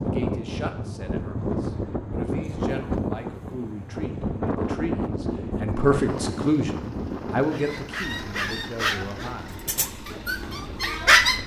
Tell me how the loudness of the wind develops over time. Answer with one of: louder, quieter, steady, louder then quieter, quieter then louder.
quieter.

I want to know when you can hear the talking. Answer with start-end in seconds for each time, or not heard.
0.0-9.6.